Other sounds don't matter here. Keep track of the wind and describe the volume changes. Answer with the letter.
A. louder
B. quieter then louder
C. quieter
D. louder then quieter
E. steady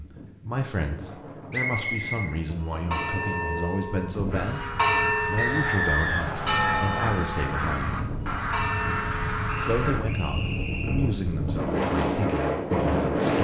A.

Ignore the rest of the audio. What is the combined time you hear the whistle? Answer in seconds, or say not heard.
4 s.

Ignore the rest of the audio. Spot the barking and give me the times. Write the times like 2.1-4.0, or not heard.
not heard.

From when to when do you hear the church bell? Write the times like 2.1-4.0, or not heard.
2.5-9.6.